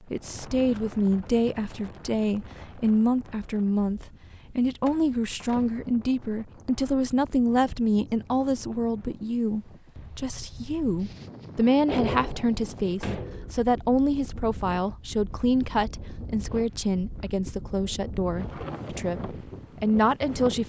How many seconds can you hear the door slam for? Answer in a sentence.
The door slam can be heard for 3 seconds in total.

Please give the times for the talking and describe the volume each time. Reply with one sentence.
The talking can be heard from 0.1 to 20.6 s, at a steady volume.